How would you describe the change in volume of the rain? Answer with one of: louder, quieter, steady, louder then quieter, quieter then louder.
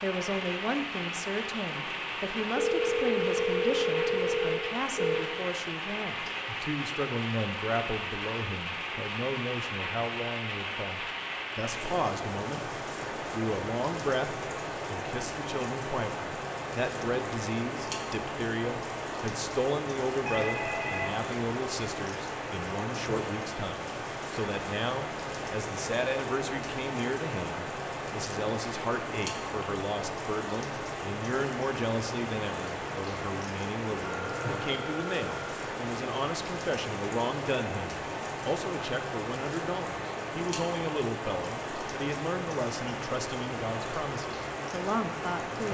steady.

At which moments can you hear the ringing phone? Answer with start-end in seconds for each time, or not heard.
2.5-5.3, 20.2-21.1, 34.0-35.6.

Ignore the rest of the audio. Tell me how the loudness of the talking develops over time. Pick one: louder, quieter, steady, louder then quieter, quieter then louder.
steady.